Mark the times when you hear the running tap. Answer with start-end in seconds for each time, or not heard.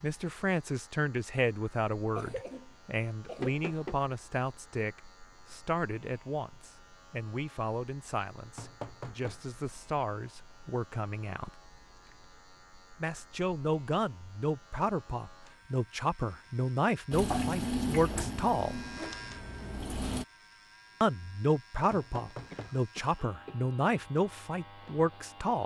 17.1-20.2.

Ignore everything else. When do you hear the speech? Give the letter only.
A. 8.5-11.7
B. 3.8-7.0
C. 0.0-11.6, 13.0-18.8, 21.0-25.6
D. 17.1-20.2
C.